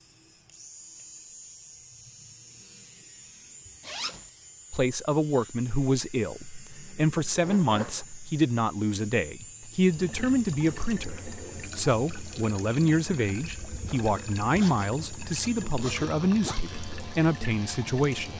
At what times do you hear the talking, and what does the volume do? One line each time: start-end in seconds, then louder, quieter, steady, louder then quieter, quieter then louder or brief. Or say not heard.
4.7-18.3 steady.